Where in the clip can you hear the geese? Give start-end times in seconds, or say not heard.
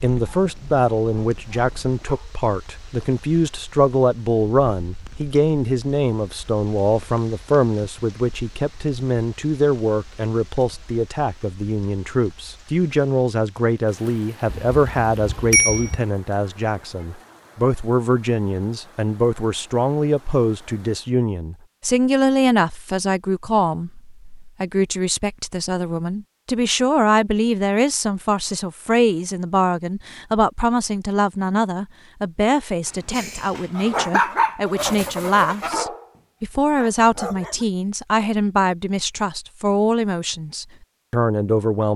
33.7-35.9.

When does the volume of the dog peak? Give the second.
34 s.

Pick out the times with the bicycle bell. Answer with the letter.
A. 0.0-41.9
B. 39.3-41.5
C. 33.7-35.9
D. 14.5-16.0
D.